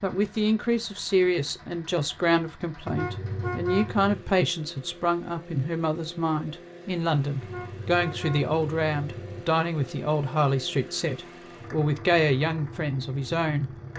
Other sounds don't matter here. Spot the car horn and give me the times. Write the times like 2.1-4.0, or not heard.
2.9-4.2, 7.4-9.4.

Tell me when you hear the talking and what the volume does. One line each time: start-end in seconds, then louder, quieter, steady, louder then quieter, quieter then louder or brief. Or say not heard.
0.0-13.8 steady.